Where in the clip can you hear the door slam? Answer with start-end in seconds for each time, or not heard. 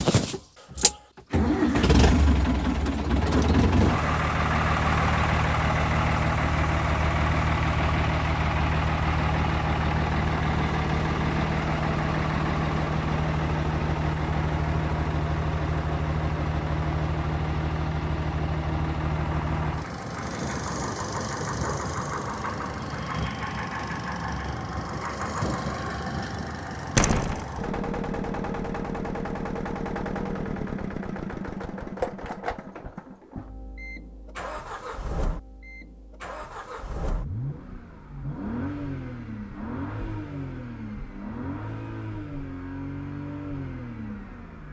26.9-27.4.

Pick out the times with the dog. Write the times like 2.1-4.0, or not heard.
not heard.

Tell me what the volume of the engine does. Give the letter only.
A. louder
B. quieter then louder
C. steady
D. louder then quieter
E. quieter
E.